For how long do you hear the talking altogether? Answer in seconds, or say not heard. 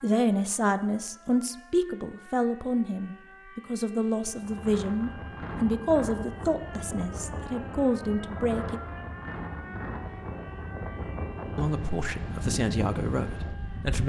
11 s.